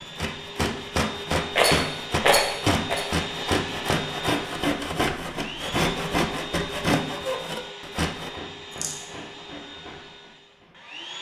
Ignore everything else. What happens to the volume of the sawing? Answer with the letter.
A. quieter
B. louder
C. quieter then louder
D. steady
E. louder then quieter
A.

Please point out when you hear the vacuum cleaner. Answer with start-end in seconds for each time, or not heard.
0.0-11.1.